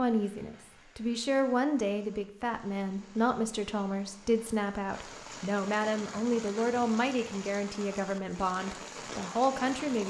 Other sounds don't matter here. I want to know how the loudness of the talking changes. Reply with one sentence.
The loudness of the talking stays about the same.